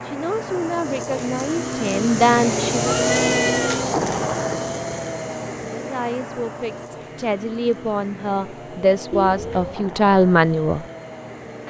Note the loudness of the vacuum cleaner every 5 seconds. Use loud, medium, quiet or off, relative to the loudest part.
loud, medium, quiet.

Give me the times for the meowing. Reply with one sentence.
You can hear the meowing from 2.9 to 3.9 s and from 9.1 to 9.8 s.